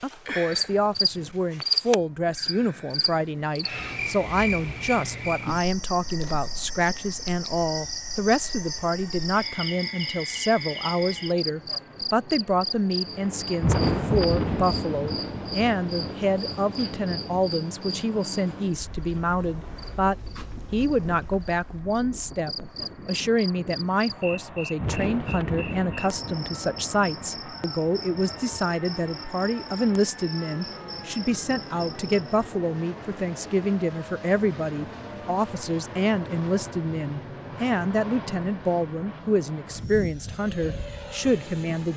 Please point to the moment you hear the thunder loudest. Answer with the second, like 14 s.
14 s.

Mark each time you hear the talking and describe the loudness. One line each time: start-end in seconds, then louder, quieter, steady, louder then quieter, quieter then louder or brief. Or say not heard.
0.0-41.9 steady.